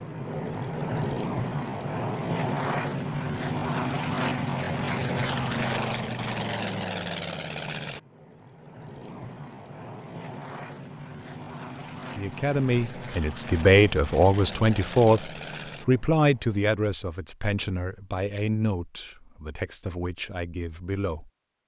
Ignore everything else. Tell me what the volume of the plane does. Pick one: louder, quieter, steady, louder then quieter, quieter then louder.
quieter.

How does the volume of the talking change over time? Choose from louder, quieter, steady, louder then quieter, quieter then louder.
quieter.